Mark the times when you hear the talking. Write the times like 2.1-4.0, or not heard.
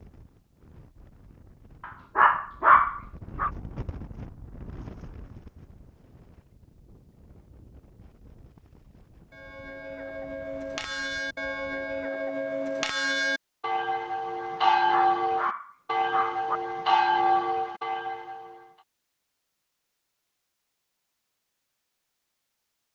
not heard.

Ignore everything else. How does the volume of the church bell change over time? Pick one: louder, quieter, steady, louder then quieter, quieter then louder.
louder.